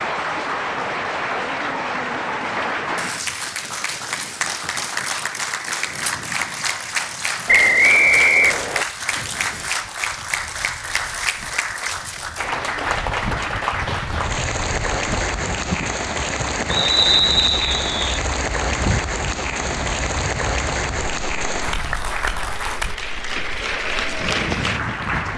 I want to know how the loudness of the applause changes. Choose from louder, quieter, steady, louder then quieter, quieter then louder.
steady.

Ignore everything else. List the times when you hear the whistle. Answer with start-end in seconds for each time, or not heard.
7.5-8.8, 16.7-18.0.